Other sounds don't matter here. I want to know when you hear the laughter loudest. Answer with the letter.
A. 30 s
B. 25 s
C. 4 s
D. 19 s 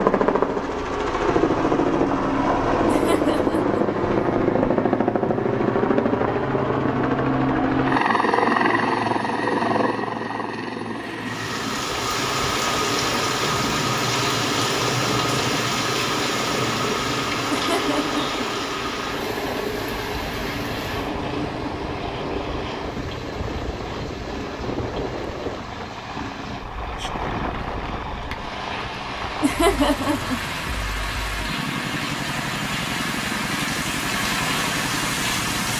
A.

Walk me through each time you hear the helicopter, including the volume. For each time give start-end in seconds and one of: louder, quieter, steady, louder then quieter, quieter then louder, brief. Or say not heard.
0.0-35.7 quieter.